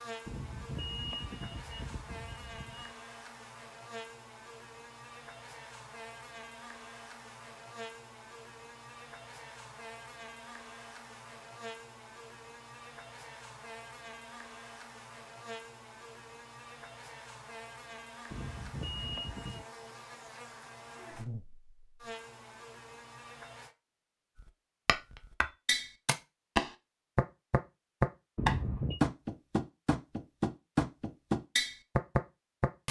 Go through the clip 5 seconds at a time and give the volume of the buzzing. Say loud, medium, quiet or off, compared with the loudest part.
loud, loud, loud, loud, loud, off, off.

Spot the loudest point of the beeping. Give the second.
29 s.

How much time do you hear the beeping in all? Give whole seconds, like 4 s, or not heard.
5 s.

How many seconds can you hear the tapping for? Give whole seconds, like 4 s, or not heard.
8 s.